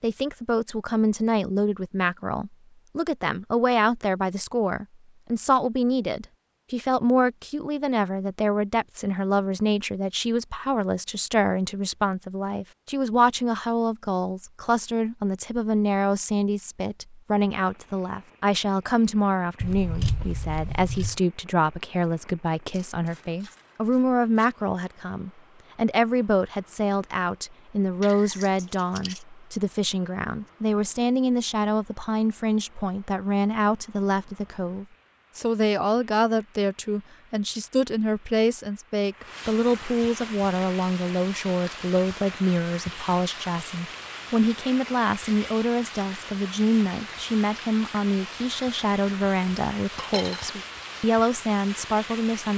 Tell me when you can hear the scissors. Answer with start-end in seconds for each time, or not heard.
19.6-21.1, 28.0-29.2.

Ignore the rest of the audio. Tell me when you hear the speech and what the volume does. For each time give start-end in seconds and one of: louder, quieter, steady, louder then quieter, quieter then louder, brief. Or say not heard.
0.0-52.5 steady.